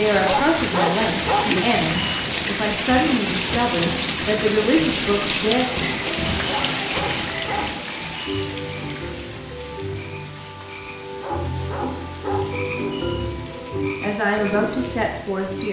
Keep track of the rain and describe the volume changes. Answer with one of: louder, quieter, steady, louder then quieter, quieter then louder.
quieter.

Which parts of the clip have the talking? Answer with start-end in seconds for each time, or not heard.
0.0-5.7, 14.0-15.6.